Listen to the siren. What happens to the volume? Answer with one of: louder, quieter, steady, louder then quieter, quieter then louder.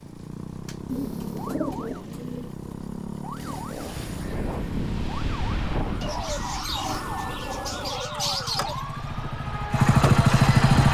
steady.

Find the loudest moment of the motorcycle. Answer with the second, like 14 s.
10 s.